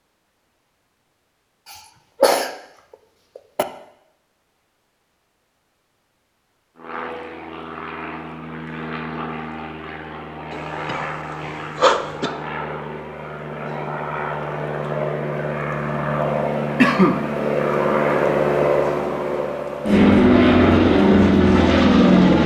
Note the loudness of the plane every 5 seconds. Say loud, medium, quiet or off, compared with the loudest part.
off, quiet, quiet, medium, loud.